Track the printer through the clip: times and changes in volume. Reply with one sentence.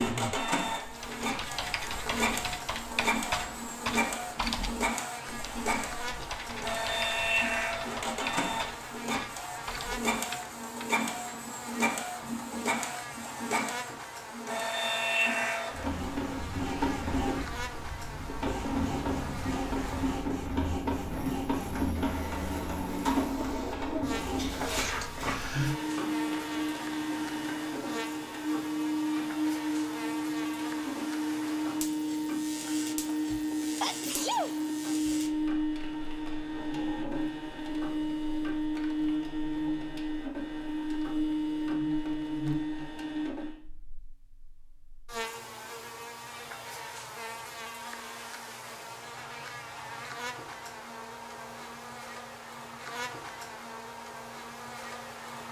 You can hear the printer from 0.0 to 43.5 s, at a steady volume.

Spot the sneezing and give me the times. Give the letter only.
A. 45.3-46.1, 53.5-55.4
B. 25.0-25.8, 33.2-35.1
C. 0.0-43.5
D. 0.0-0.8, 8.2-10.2
B.